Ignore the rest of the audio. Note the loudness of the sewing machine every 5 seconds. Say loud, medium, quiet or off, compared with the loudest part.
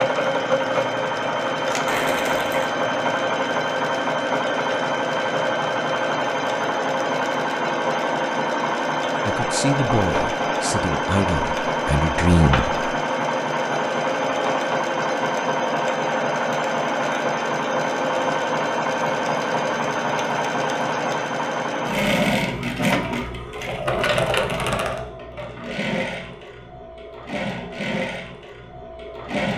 loud, loud, loud, loud, loud, medium.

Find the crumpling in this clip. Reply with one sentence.
You can hear the crumpling from 1.9 to 2.7 s.